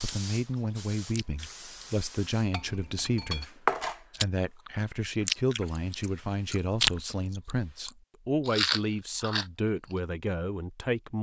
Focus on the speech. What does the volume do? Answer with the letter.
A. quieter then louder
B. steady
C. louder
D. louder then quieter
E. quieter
B.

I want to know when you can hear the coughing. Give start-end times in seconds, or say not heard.
not heard.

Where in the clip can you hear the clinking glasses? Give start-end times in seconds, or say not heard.
2.5-3.5.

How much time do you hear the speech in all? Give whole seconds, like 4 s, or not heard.
11 s.